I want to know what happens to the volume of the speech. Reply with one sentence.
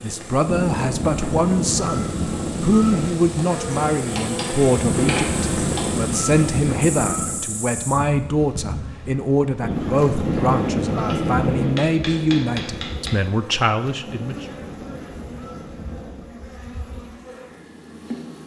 The loudness of the speech stays about the same.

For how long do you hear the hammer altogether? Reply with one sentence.
The hammer can be heard for 5 seconds in total.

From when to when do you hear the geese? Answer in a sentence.
The geese can be heard from 0.5 to 3.1 s, from 4.8 to 7.5 s, from 9.6 to 11.7 s and from 14.2 to 16.3 s.